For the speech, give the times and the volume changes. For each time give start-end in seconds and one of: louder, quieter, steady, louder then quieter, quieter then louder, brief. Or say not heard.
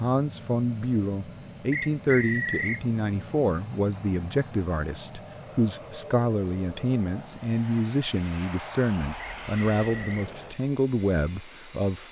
0.0-12.0 steady.